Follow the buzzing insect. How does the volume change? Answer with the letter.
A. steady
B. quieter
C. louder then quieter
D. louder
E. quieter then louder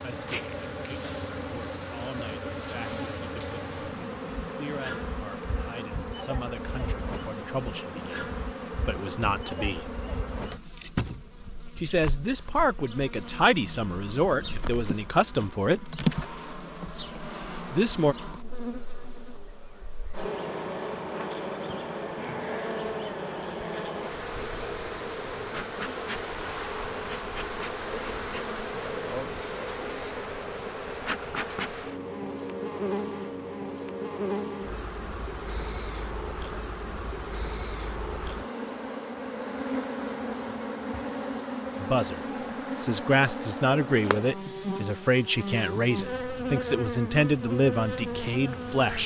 A.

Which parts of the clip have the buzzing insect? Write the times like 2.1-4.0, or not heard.
0.0-49.0.